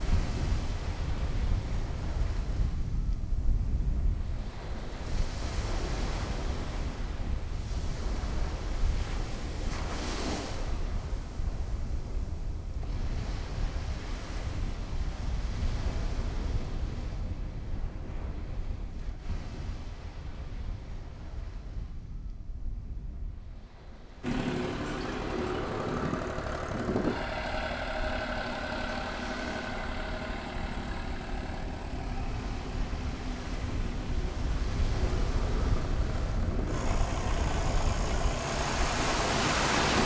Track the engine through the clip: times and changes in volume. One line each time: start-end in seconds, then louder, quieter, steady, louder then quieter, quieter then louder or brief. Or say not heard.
24.2-40.0 quieter then louder.